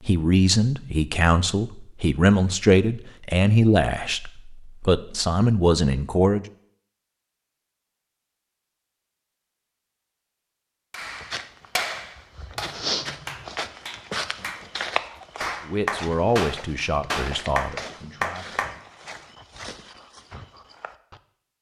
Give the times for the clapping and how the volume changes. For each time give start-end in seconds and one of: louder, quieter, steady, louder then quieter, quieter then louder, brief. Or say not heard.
10.9-18.8 quieter then louder.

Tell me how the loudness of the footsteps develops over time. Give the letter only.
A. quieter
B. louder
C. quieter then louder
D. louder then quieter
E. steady
A.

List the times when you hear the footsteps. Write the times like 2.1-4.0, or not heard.
11.0-21.2.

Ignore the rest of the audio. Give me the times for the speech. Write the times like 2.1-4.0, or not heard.
0.1-6.5, 15.7-18.6.